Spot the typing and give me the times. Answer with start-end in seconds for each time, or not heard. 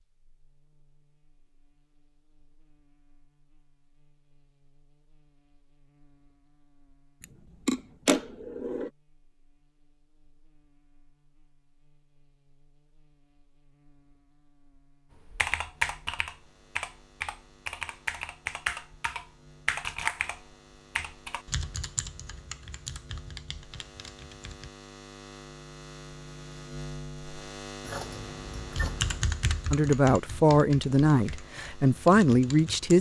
15.3-24.7, 28.7-32.9.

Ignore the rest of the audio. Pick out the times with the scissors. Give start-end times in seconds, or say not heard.
7.2-8.9, 27.8-29.3.